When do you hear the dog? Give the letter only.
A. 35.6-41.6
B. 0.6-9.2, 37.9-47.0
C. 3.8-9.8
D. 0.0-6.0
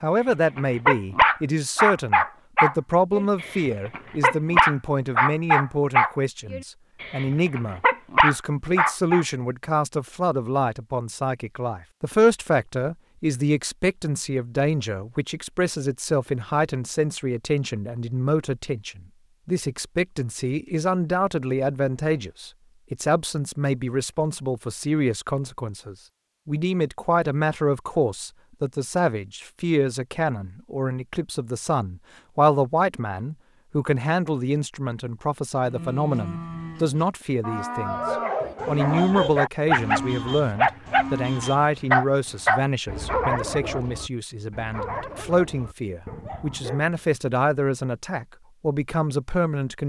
B.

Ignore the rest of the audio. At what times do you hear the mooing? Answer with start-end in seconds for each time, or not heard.
35.6-41.6.